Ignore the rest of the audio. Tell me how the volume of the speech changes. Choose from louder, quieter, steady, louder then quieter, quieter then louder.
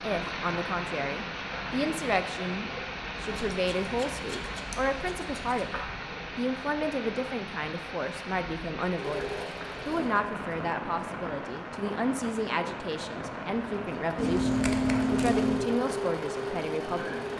steady.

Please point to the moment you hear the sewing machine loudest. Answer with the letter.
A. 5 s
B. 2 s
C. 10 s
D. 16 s
D.